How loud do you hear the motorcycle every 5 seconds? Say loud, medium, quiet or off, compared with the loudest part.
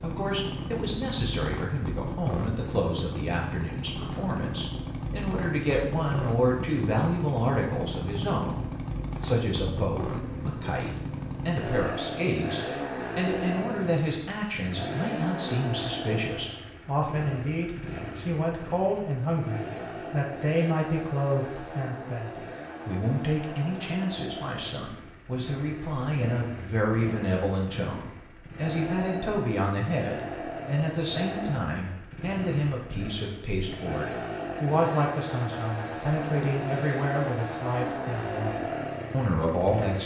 loud, loud, loud, loud, medium, medium, loud, loud.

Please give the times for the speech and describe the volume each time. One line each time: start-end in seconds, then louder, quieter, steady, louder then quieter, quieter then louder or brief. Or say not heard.
0.0-40.0 steady.